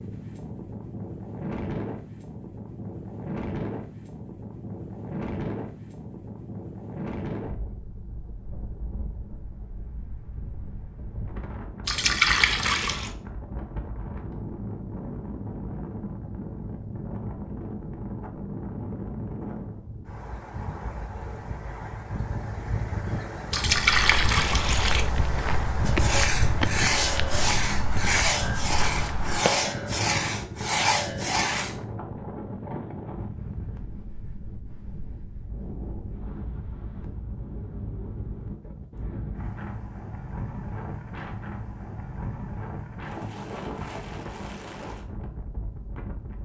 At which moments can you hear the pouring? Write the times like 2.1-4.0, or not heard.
11.8-13.1, 23.5-25.1.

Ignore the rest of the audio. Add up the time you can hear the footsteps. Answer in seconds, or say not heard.
6 s.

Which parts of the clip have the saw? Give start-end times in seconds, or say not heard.
25.9-31.8.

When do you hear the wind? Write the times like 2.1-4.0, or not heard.
0.0-46.4.